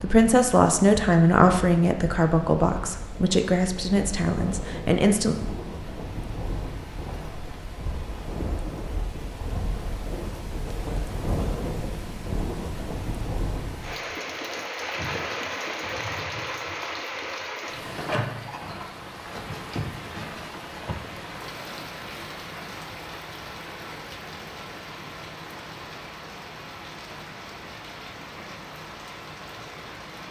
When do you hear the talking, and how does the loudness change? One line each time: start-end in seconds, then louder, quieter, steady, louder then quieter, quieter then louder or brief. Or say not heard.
0.0-5.3 quieter.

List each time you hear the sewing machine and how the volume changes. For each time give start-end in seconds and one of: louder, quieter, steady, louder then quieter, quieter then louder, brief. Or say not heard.
not heard.